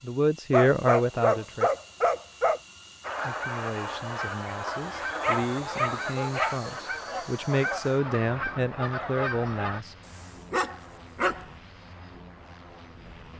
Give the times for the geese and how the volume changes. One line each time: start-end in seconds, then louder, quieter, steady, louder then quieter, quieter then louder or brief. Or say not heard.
3.0-9.8 steady.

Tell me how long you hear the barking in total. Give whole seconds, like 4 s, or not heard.
5 s.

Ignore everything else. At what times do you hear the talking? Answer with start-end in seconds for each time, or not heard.
0.0-1.7, 3.2-9.9.